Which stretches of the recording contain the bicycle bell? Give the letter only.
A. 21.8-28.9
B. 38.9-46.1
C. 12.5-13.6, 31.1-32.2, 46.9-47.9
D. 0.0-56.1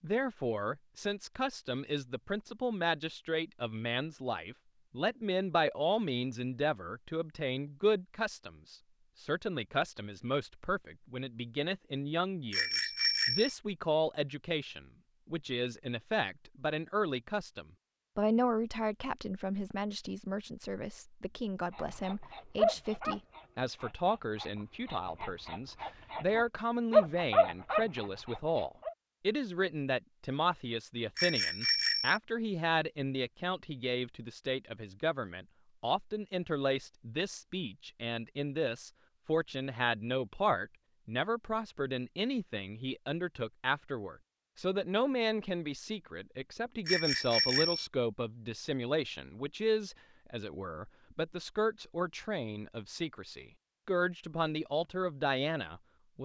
C.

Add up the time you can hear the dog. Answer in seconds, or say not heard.
7 s.